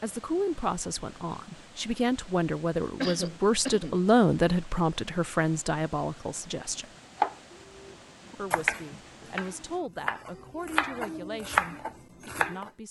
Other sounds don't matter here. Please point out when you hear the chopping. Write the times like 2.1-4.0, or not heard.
7.2-12.7.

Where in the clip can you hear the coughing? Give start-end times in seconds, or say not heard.
3.0-4.0.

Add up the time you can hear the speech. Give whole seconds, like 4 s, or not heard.
11 s.